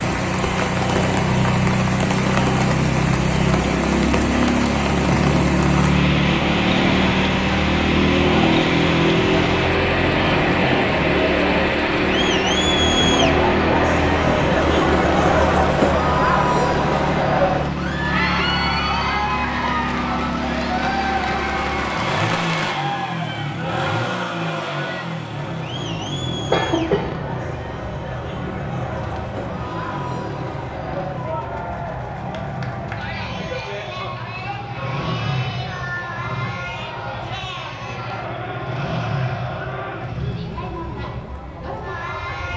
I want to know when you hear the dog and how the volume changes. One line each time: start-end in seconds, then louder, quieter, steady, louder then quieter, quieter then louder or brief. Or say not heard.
not heard.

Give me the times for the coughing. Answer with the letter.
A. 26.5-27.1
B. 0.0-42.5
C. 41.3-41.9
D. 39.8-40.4
A.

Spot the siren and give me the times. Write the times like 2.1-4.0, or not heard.
not heard.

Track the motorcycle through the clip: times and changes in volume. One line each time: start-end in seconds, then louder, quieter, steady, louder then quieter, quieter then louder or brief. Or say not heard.
0.0-42.5 quieter.